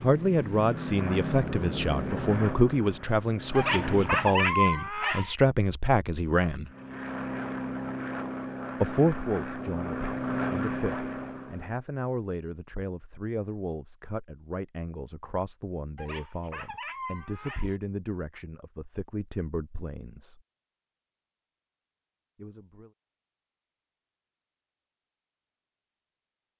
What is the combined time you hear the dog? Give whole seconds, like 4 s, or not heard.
4 s.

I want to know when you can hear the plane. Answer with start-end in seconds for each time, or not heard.
0.0-4.5, 6.7-11.8.